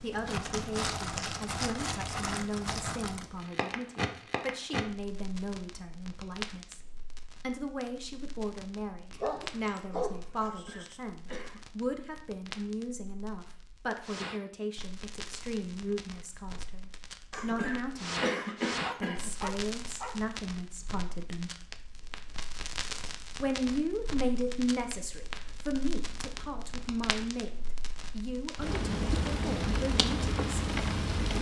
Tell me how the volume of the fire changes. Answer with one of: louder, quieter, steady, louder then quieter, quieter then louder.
quieter then louder.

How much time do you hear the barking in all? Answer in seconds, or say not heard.
3 s.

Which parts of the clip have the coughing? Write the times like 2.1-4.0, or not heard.
10.4-11.7, 17.3-19.3.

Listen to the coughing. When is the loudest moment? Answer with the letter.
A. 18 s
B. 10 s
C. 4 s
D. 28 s
A.